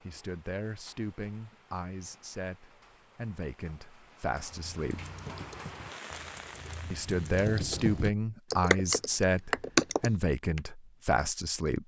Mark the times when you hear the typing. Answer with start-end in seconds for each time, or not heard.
4.5-10.6.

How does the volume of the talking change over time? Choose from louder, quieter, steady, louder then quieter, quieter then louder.
louder.